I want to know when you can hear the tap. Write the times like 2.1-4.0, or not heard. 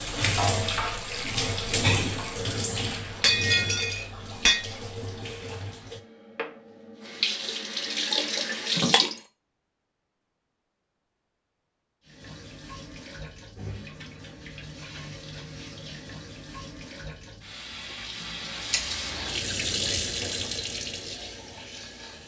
0.0-9.2, 12.1-22.2.